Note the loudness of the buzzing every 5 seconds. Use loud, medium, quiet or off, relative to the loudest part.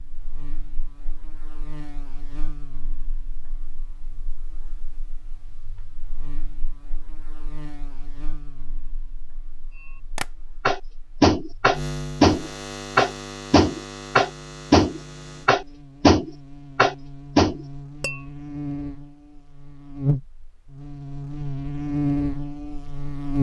quiet, quiet, medium, quiet, loud.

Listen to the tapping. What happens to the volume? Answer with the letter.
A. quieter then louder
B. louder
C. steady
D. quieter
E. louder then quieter
C.